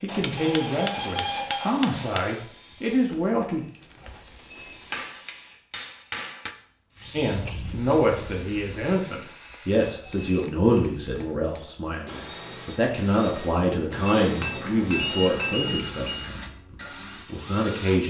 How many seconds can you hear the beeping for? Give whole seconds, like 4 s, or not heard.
4 s.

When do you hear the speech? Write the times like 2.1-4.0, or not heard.
0.0-3.6, 7.1-18.0.